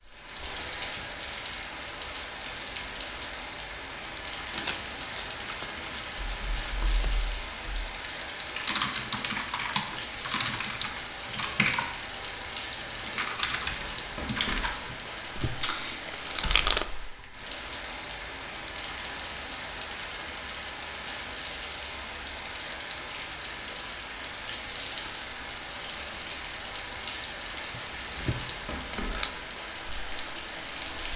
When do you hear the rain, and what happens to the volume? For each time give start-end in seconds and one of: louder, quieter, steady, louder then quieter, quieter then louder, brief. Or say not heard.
0.0-31.1 steady.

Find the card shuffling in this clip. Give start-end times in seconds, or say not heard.
4.5-7.1, 14.9-16.9, 27.7-29.3.